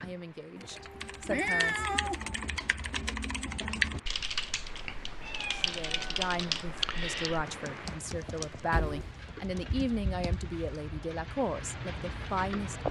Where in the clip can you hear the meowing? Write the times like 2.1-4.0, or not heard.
0.6-2.2, 5.2-6.8, 8.7-9.1.